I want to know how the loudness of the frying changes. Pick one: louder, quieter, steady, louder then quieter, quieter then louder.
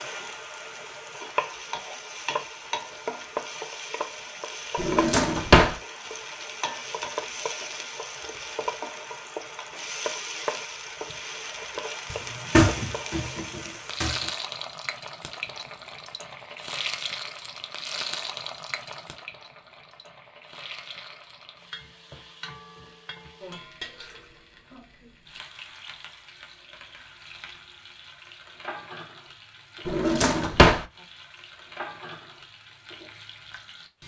quieter.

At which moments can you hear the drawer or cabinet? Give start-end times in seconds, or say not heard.
4.8-5.8, 12.1-14.2, 29.9-30.9.